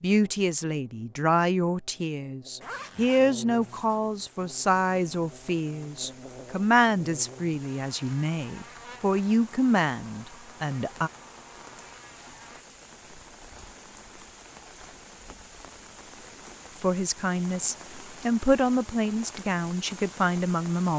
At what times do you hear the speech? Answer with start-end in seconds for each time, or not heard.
0.0-11.1, 16.8-20.9.